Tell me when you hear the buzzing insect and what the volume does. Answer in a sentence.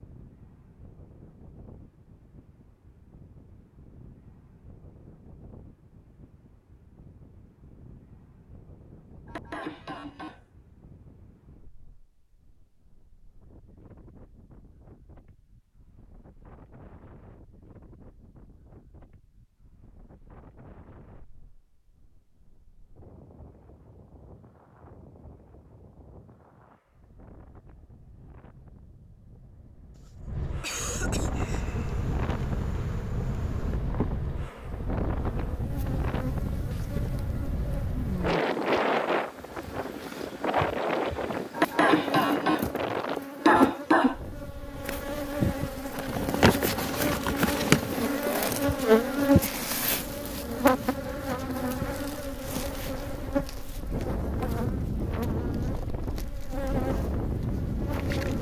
The buzzing insect can be heard from 31.1 to 58.3 s, getting louder then quieter.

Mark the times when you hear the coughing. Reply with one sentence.
The coughing can be heard from 9.2 to 10.4 s, from 29.9 to 31.8 s and from 41.5 to 44.1 s.